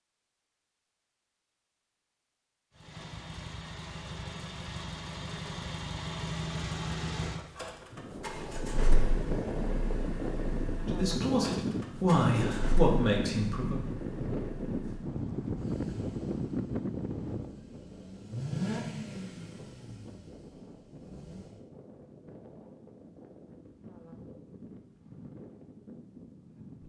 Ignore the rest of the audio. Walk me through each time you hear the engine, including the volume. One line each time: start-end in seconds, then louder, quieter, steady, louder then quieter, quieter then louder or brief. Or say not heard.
2.8-21.6 quieter then louder.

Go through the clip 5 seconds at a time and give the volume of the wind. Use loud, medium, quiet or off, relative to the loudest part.
off, loud, loud, loud, quiet, quiet.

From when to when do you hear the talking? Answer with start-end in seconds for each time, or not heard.
10.8-13.8.